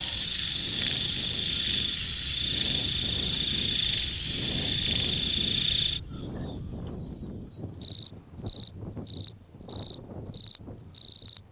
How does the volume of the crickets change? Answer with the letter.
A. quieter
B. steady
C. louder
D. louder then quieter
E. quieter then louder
A.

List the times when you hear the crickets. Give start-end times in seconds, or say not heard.
0.0-11.4.